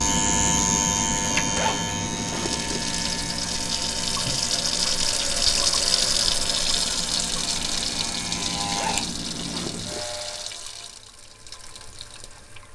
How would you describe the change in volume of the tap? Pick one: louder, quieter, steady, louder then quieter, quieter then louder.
louder then quieter.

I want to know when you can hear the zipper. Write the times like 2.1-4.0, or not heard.
1.6-2.9, 8.8-10.1.